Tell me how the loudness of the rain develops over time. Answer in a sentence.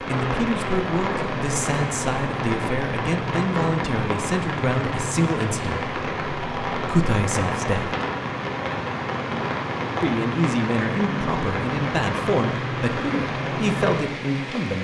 The loudness of the rain stays about the same.